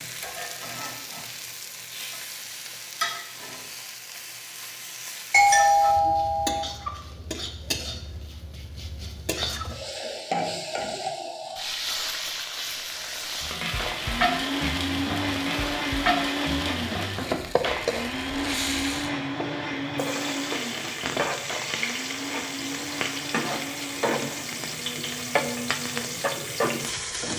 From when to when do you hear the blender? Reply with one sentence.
You can hear the blender from 13.8 to 27.3 s.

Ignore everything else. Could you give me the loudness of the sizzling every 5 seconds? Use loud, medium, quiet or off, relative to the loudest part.
medium, medium, loud, loud, loud, loud.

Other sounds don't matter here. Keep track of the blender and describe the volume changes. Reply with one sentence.
The volume of the blender goes down.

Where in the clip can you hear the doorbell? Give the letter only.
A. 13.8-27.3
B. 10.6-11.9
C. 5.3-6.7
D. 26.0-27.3
C.